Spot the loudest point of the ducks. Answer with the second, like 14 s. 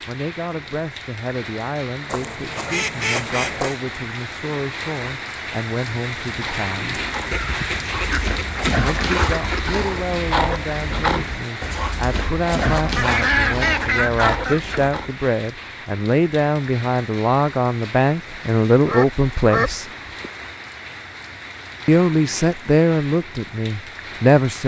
13 s.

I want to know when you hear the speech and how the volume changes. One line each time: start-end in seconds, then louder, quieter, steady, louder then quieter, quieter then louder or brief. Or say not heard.
0.1-7.0 steady
8.8-19.9 louder
21.9-24.6 brief.